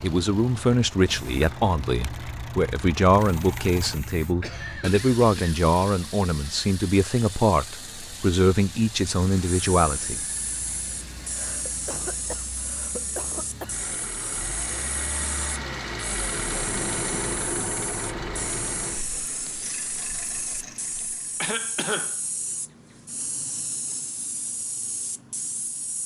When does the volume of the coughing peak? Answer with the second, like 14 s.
22 s.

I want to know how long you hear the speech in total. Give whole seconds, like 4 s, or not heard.
10 s.